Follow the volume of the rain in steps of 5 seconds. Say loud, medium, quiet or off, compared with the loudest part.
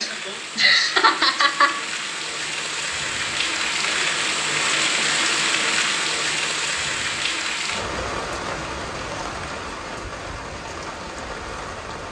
loud, loud, medium.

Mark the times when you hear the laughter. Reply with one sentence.
The laughter can be heard from 0.0 to 1.7 s.